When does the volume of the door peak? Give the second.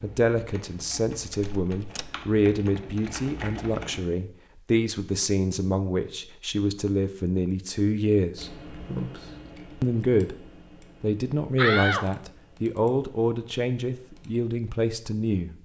12 s.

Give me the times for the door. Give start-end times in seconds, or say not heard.
1.3-2.1, 11.6-12.1.